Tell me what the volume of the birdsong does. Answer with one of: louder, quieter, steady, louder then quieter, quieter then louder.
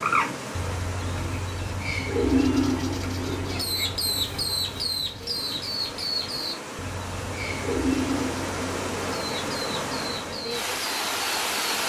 quieter.